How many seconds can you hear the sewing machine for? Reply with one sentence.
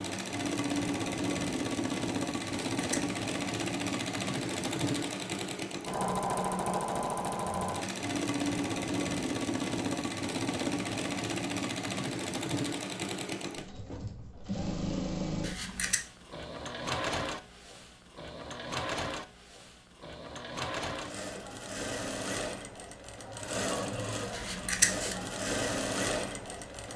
The sewing machine can be heard for 27 seconds in total.